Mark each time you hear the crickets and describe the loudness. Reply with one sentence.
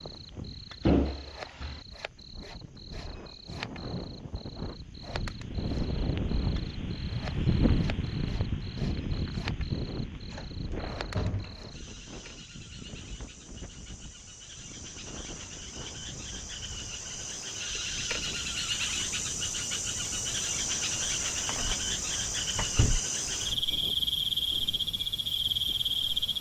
The crickets can be heard from 0.0 to 26.3 s, getting louder.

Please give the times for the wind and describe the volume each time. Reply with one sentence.
You can hear the wind from 0.0 to 26.3 s, getting louder then quieter.